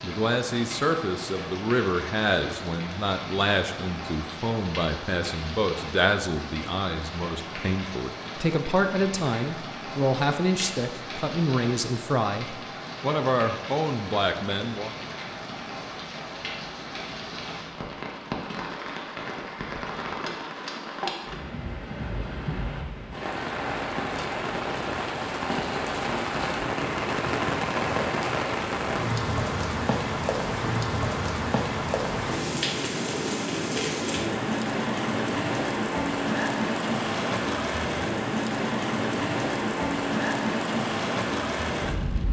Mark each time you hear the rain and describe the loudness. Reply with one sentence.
The rain can be heard from 0.0 to 42.2 s, getting louder.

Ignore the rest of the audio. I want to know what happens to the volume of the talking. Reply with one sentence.
The volume of the talking stays about the same.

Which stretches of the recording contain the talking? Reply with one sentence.
The talking can be heard from 0.0 to 14.9 s.